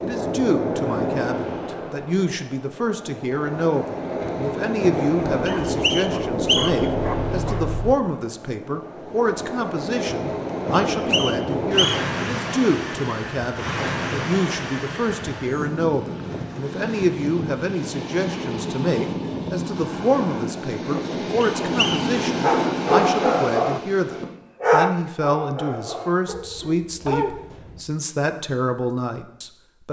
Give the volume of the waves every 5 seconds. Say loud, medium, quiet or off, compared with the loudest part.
loud, loud, loud, loud, loud, off.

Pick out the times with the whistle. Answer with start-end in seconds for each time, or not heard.
5.5-6.9, 10.9-12.0, 21.4-22.1.